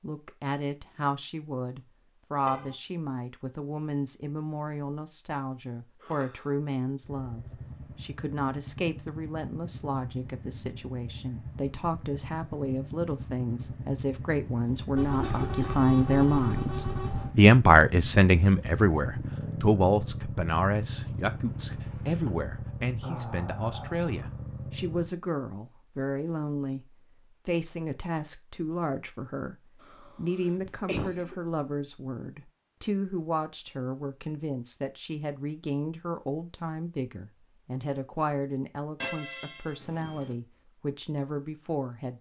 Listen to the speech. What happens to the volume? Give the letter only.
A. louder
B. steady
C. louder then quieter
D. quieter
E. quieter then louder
C.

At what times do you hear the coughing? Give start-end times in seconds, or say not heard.
6.0-6.5, 15.0-15.8, 29.8-31.4.